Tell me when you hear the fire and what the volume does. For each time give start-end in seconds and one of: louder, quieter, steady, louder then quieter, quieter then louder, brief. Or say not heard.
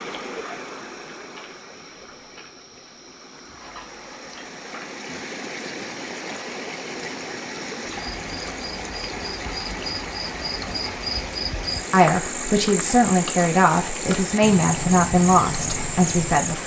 not heard.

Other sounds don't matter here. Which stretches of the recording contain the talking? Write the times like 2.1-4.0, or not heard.
11.9-16.6.